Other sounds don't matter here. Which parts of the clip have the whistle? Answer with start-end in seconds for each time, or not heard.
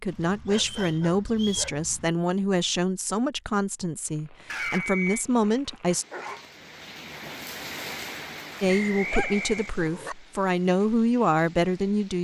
0.6-1.7, 4.8-5.2, 8.7-9.7.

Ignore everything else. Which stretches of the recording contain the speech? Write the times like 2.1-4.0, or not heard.
0.0-6.0, 8.6-12.1.